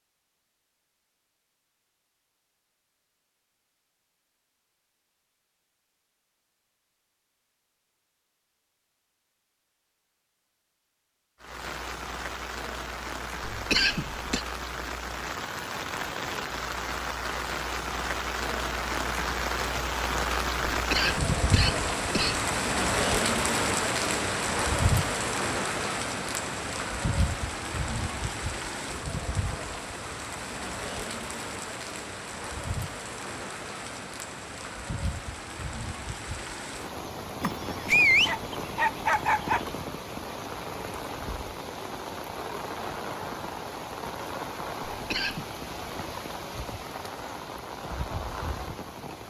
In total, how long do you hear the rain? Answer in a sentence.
You can hear the rain for 38 seconds altogether.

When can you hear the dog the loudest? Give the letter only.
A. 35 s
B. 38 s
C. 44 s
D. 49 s
B.